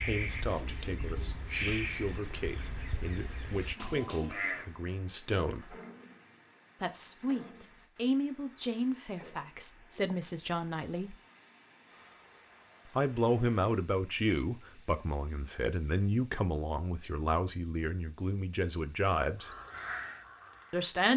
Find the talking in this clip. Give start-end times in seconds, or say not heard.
0.0-5.8, 6.8-11.2, 12.9-19.6, 20.7-21.1.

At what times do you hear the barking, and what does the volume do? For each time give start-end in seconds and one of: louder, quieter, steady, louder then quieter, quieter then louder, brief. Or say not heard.
not heard.